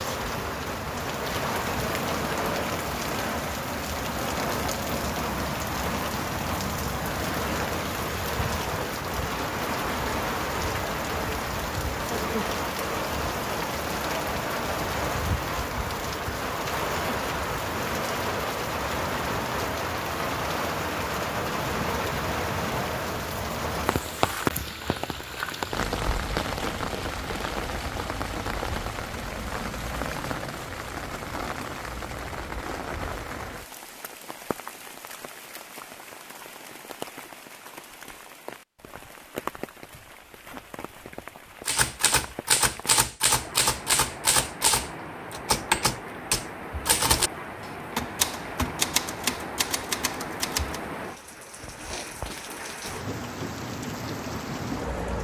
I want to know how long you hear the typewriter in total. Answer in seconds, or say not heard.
9 s.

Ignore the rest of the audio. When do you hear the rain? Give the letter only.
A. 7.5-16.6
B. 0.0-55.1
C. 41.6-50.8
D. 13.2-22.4
B.